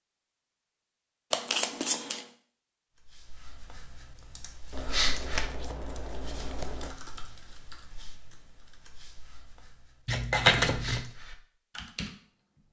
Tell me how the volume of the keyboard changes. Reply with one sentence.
The loudness of the keyboard goes down, then up.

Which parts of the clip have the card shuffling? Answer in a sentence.
You can hear the card shuffling from 1.3 to 2.2 s, from 4.7 to 7.0 s and from 10.1 to 11.1 s.